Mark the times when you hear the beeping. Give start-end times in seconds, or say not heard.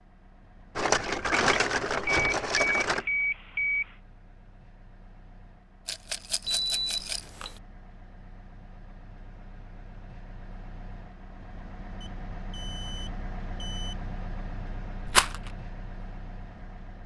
2.0-4.0, 6.5-7.6, 12.0-13.9.